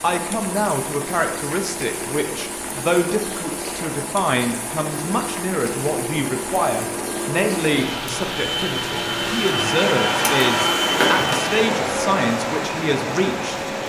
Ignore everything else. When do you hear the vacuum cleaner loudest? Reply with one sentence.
The volume of the vacuum cleaner peaks at 11 seconds.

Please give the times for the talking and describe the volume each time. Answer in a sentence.
You can hear the talking from 0.0 to 13.7 s, at a steady volume.